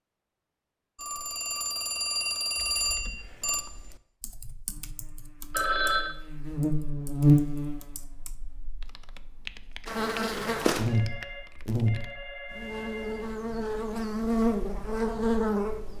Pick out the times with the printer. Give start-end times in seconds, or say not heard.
not heard.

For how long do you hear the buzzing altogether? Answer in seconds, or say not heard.
11 s.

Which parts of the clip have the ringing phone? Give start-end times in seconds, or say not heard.
0.9-3.6, 5.5-6.2, 10.8-13.3.